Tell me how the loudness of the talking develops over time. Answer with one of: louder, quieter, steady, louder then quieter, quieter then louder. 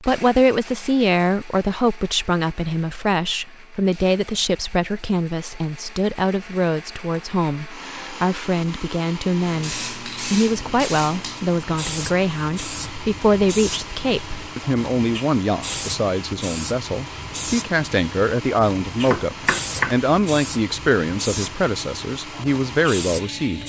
steady.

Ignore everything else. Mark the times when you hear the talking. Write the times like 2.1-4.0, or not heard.
0.0-23.6.